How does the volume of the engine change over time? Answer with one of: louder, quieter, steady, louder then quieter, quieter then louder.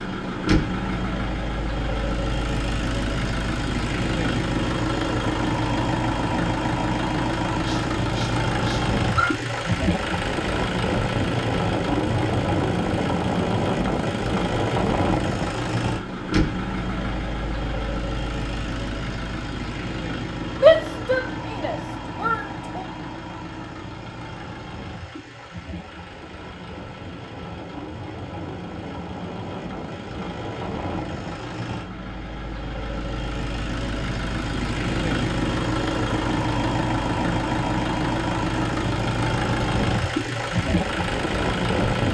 quieter then louder.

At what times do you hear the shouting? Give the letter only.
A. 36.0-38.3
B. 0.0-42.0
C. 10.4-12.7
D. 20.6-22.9
D.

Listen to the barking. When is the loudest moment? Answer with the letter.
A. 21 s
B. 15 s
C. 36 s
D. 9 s
D.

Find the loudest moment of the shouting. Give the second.
21 s.